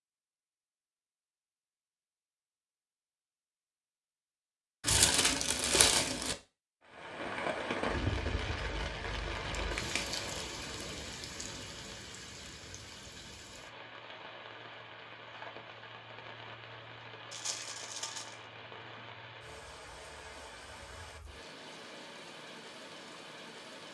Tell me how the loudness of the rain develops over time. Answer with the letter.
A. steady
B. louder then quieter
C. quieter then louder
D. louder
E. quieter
E.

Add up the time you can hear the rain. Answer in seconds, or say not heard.
17 s.